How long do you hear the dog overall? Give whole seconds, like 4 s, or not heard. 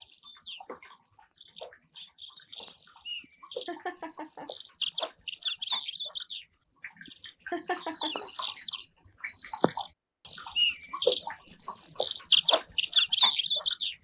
not heard.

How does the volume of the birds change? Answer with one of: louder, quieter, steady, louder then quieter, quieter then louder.
louder.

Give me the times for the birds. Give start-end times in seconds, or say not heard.
0.0-13.9.